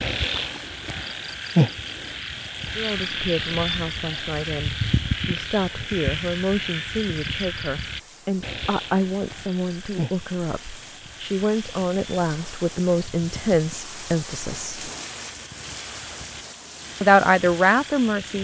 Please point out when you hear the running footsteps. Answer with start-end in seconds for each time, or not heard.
not heard.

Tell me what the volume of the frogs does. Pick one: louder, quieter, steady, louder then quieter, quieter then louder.
quieter.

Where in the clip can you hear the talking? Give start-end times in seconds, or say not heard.
2.8-14.8, 17.0-18.3.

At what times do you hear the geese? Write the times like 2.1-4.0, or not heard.
not heard.